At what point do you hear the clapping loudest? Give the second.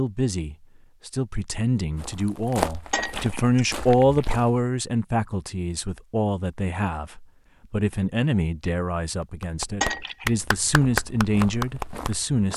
11 s.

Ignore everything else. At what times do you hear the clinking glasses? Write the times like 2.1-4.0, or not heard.
2.9-3.8, 9.8-10.3.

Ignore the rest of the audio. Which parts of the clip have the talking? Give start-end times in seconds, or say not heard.
0.0-12.5.